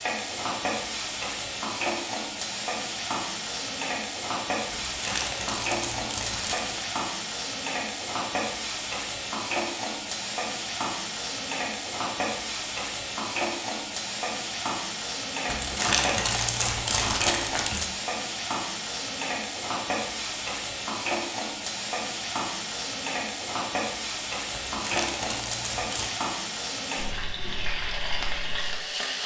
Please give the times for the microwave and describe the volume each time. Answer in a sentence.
You can't hear the microwave here.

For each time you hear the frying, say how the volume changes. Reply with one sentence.
The frying can be heard from 0.0 to 29.2 s, at a steady volume.